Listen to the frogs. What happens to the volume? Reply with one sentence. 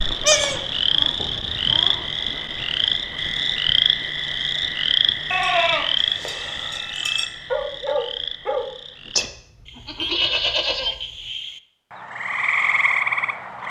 The loudness of the frogs goes down, then up.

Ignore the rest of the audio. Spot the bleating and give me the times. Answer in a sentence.
The bleating can be heard from 0.1 to 2.0 s, from 5.3 to 7.2 s and from 9.2 to 10.9 s.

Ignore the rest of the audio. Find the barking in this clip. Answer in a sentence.
You can hear the barking from 7.5 to 8.7 s.